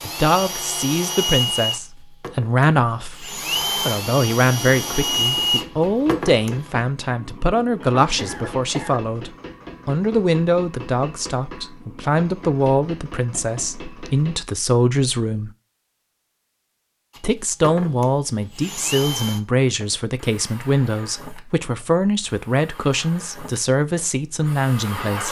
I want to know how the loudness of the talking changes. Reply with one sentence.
The volume of the talking stays about the same.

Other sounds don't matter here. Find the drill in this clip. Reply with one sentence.
The drill can be heard from 0.0 to 6.7 s and from 17.1 to 25.2 s.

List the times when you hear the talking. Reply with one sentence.
The talking can be heard from 0.0 to 15.5 s and from 17.2 to 25.2 s.